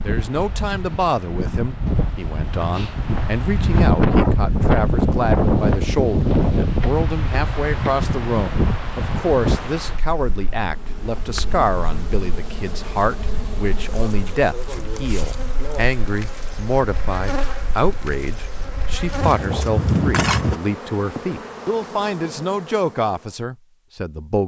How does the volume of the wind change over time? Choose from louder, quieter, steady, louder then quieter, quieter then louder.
quieter then louder.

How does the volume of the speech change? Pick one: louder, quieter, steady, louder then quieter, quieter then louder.
steady.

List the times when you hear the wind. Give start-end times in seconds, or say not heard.
0.0-20.6.